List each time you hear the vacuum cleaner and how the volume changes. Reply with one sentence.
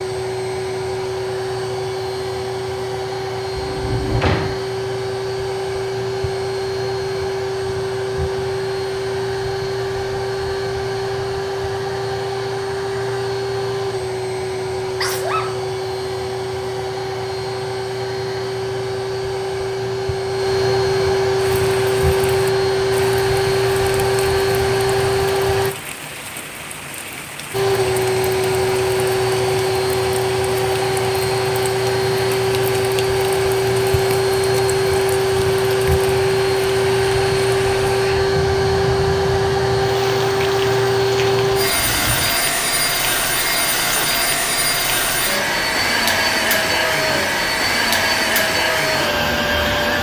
You can hear the vacuum cleaner from 0.0 to 25.8 s, getting louder; and from 27.5 to 49.9 s, at a steady volume.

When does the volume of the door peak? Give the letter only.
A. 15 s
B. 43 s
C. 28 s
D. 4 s
D.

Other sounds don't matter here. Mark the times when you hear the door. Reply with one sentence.
The door can be heard from 3.5 to 4.6 s and from 41.6 to 42.3 s.